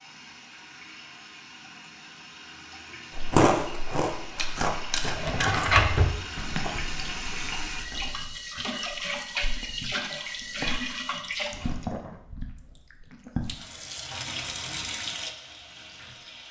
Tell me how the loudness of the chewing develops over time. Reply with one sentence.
The volume of the chewing goes down, then up.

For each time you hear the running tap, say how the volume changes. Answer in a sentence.
The running tap can be heard from 0.0 to 11.9 s, getting louder; and briefly from 13.4 to 16.4 s.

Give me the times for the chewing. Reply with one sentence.
You can hear the chewing from 3.1 to 13.6 s.